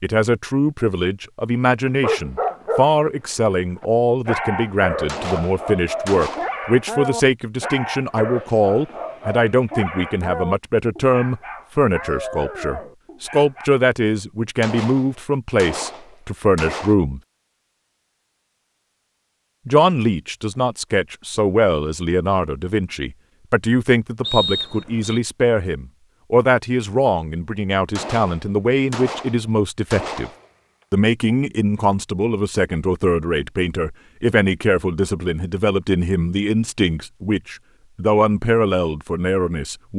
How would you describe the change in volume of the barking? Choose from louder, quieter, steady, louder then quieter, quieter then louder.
quieter.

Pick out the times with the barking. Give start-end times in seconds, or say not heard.
2.0-13.7.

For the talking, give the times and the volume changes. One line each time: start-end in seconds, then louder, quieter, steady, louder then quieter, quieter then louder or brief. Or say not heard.
0.0-17.2 steady
19.6-30.3 steady
30.9-39.9 steady.